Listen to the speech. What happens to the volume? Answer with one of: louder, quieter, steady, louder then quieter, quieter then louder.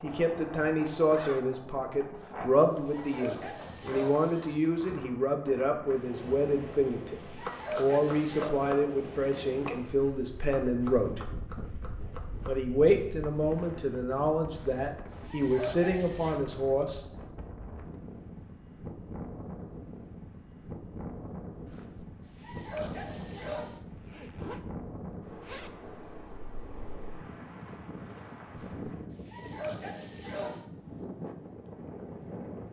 steady.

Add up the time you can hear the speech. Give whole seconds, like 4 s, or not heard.
16 s.